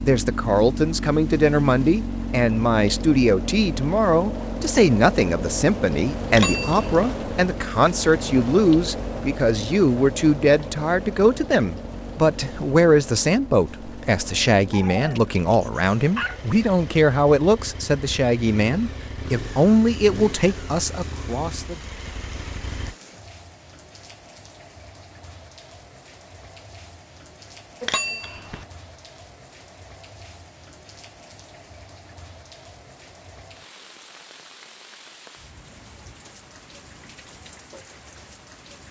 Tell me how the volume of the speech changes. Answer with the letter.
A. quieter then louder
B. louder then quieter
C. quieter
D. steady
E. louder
D.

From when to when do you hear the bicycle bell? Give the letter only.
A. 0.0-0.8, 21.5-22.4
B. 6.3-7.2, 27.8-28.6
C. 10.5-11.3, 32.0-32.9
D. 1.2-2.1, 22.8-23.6
B.